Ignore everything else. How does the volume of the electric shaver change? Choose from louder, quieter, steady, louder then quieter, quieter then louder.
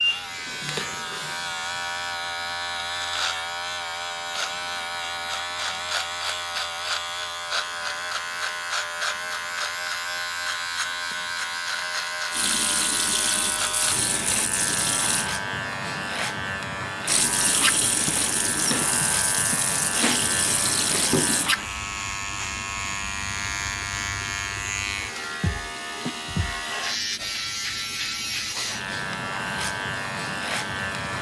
steady.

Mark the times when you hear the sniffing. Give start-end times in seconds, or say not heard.
28.4-28.8.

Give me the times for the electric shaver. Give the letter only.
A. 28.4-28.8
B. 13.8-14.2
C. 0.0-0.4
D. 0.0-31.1
D.